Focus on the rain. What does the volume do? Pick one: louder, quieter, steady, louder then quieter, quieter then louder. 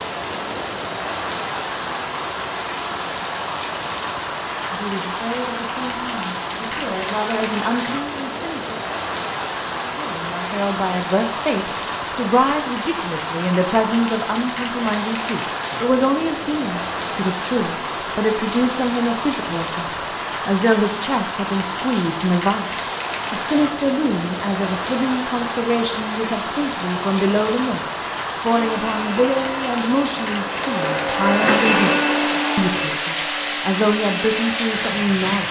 steady.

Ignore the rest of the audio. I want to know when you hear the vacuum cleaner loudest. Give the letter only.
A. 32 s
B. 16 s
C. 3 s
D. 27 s
A.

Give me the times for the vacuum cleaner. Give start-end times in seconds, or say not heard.
28.6-35.4.